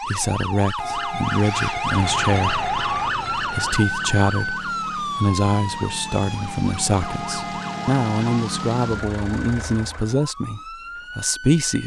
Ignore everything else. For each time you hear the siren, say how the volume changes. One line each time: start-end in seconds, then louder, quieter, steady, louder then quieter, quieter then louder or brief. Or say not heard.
0.0-11.8 quieter.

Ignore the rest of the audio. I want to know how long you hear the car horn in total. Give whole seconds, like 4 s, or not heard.
4 s.